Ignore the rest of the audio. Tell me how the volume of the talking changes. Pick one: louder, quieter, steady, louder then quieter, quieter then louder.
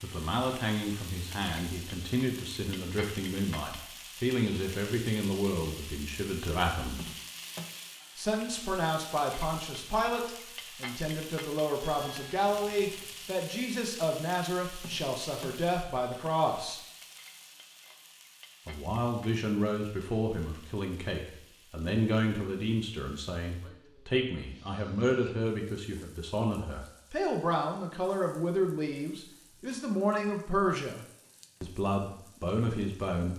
steady.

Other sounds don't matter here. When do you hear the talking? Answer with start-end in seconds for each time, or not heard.
0.0-7.1, 8.2-16.8, 18.6-33.3.